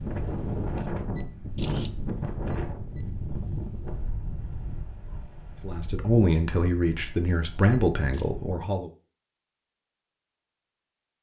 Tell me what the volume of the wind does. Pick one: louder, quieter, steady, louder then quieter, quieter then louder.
quieter.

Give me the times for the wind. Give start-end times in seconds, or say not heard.
0.0-8.7.